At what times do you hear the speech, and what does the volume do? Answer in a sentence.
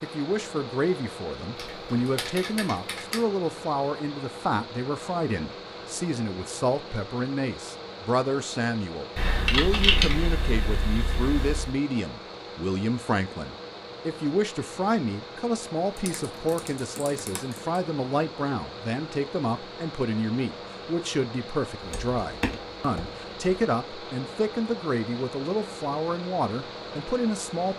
The speech can be heard from 0.0 to 27.7 s, at a steady volume.